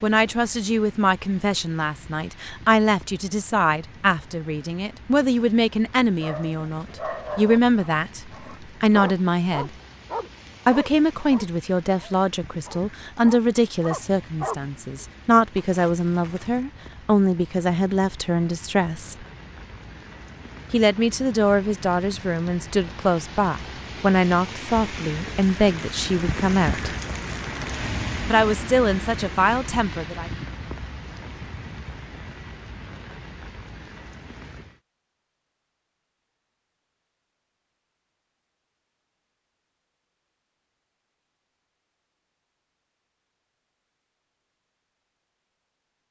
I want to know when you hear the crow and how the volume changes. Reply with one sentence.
The crow can't be heard in this clip.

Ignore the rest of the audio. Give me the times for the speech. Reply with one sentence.
You can hear the speech from 0.0 to 9.7 s, from 10.7 to 19.2 s, from 20.7 to 26.9 s and from 28.2 to 30.3 s.